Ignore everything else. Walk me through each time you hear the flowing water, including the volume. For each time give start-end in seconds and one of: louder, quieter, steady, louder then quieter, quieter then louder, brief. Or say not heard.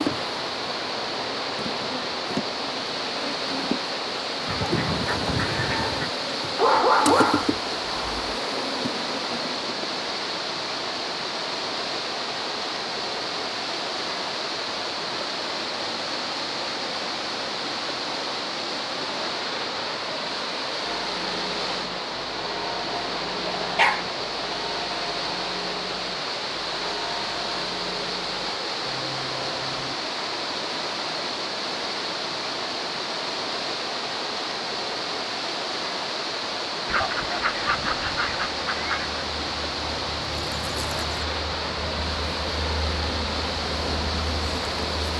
0.0-45.1 steady.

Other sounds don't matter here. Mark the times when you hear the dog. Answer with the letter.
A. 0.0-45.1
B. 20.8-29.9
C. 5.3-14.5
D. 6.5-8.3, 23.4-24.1
D.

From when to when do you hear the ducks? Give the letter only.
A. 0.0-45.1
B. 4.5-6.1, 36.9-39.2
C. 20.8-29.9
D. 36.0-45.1
B.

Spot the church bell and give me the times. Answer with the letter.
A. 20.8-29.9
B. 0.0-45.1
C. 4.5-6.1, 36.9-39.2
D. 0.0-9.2
A.